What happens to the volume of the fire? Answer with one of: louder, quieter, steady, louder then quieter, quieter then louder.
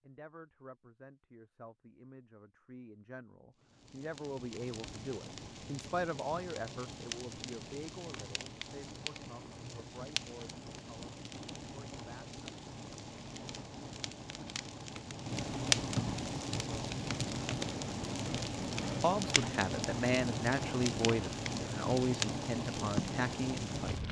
louder.